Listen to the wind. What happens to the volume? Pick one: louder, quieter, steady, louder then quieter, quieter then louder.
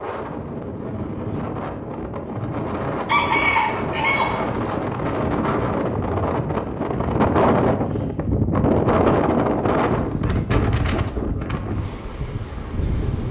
louder then quieter.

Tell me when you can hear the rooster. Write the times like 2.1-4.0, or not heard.
3.0-4.8.